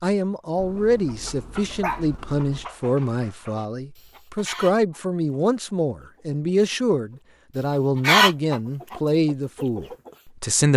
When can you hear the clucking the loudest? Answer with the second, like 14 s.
8 s.